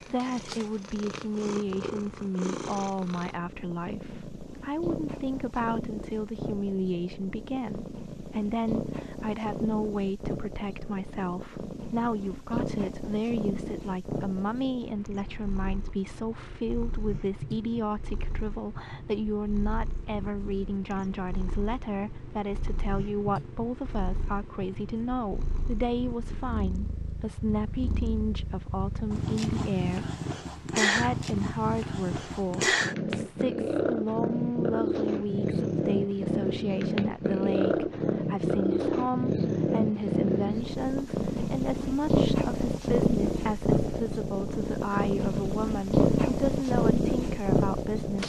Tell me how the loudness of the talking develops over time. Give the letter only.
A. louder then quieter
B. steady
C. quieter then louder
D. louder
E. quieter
B.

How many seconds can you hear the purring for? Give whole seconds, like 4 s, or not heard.
48 s.